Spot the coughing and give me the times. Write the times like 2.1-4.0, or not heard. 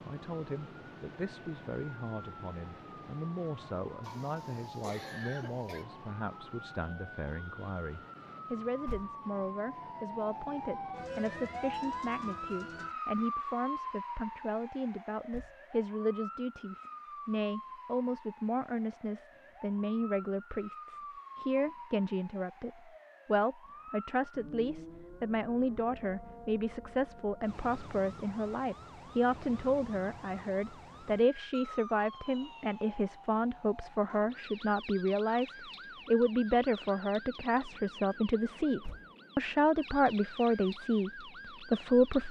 4.0-5.8.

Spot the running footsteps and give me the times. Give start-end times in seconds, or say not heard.
not heard.